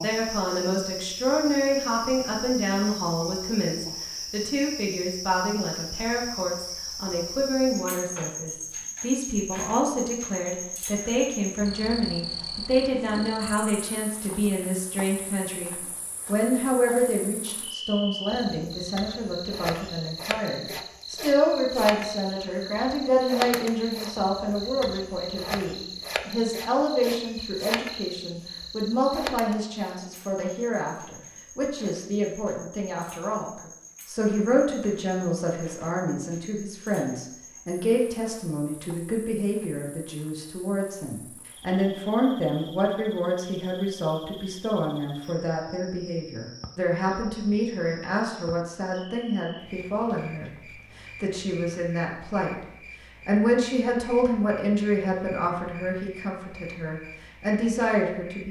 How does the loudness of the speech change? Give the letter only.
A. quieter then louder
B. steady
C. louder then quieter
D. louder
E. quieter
B.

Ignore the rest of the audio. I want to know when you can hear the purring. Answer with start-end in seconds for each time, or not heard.
not heard.